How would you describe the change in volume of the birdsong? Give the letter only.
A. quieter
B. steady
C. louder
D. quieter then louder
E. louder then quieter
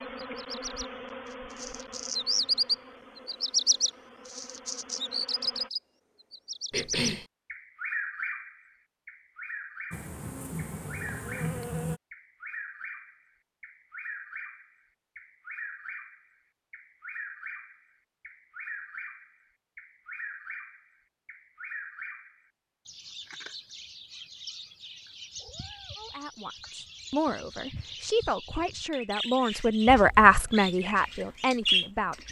D.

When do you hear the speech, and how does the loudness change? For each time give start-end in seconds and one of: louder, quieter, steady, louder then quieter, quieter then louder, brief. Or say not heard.
25.9-32.2 louder then quieter.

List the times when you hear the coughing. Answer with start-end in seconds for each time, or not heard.
6.7-7.2.